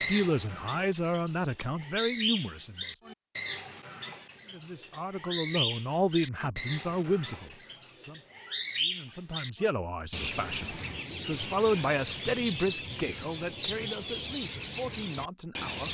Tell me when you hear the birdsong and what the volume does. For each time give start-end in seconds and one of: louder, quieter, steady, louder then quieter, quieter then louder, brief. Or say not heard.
0.0-15.8 steady.